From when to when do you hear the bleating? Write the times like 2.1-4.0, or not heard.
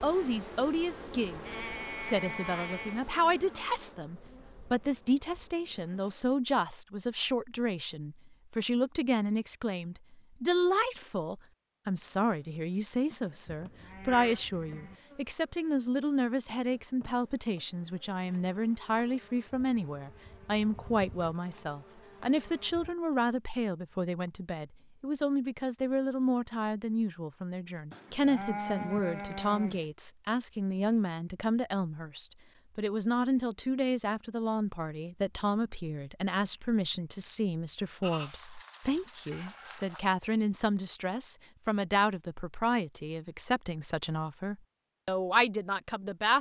1.4-3.0, 13.4-14.9, 27.9-29.9, 38.0-40.0.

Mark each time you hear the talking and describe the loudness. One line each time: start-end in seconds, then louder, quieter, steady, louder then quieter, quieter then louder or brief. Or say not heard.
0.0-46.3 steady.